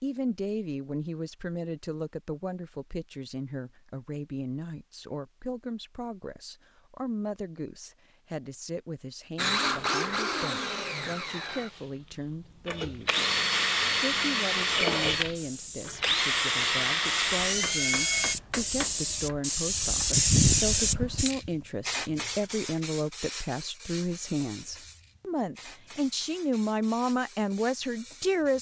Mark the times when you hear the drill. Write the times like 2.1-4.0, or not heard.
9.3-18.4.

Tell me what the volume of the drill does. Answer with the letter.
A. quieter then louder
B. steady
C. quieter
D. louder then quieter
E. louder
A.